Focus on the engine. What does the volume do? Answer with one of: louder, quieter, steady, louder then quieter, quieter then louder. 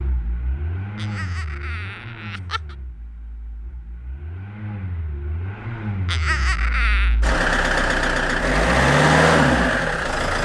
quieter then louder.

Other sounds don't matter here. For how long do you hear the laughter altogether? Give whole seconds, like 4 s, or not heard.
3 s.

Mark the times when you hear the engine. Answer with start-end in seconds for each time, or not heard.
0.0-10.4.